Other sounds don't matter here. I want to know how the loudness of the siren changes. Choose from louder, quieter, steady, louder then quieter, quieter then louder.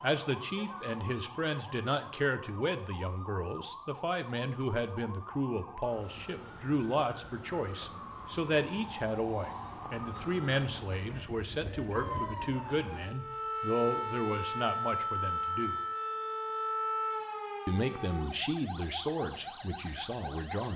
louder.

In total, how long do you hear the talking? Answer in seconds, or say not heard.
19 s.